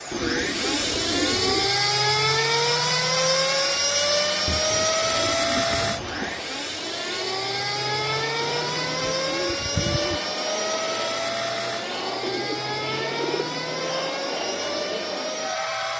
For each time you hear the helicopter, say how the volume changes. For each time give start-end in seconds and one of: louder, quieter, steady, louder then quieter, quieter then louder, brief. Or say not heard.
0.0-15.9 quieter.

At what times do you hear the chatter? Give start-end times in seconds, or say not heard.
0.0-15.9.